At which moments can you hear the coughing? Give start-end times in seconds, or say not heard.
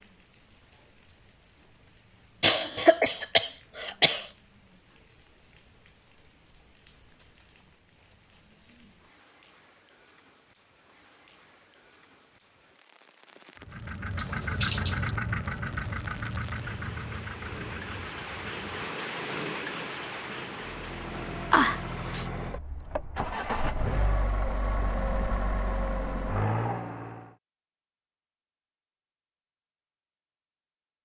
2.4-4.2, 14.2-15.1, 21.5-22.2.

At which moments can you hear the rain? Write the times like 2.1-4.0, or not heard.
0.0-22.2.